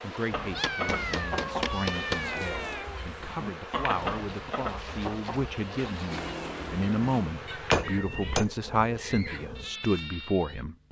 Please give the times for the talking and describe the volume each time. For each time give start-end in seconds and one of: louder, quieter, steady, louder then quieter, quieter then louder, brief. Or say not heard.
0.0-10.8 louder.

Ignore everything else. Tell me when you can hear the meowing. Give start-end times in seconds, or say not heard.
0.5-3.0, 6.1-7.1.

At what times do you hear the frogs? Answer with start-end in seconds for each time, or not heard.
not heard.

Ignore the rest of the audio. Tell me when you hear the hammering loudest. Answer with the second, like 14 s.
8 s.